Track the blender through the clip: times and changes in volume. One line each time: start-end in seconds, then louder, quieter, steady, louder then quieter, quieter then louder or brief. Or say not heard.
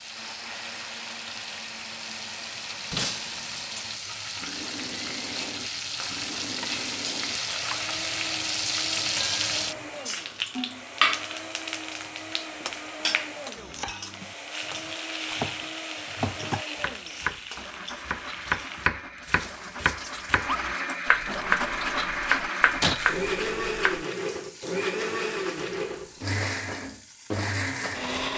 0.0-28.3 louder.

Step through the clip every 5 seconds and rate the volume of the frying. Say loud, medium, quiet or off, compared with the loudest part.
medium, loud, loud, medium, quiet, quiet.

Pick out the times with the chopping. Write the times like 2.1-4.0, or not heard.
13.6-24.1.